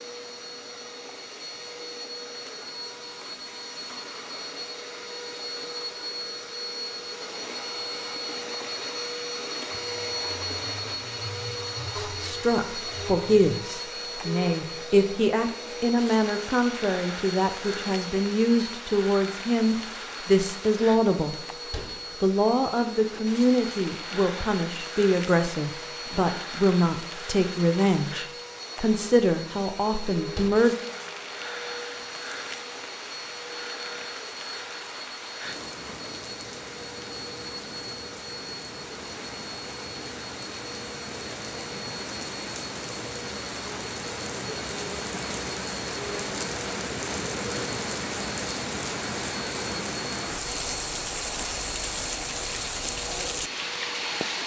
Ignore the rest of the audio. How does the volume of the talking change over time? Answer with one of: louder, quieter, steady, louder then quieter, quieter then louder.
steady.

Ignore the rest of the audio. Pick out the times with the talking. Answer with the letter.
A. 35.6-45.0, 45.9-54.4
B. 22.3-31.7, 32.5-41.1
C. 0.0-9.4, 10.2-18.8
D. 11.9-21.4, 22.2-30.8
D.